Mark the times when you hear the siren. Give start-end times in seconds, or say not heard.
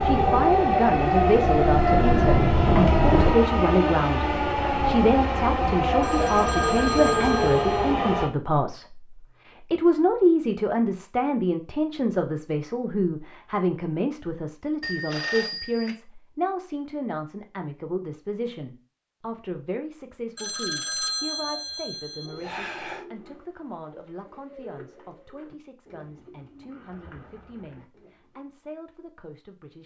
0.0-3.4.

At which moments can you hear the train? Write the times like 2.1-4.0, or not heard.
0.0-8.3.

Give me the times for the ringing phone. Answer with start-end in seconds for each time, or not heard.
6.0-8.0, 14.8-15.9, 20.4-23.1.